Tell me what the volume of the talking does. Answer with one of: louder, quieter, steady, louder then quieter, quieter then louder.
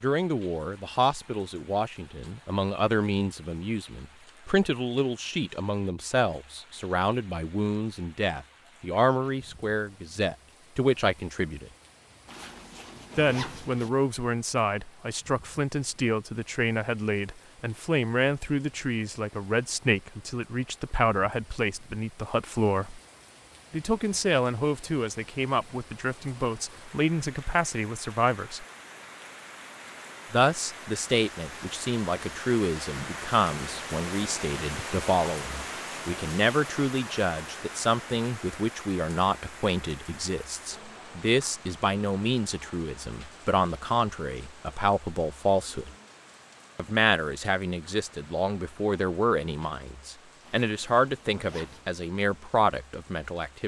steady.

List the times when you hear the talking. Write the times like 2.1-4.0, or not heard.
0.0-11.7, 13.2-23.0, 23.7-28.6, 30.3-45.9, 46.8-53.6.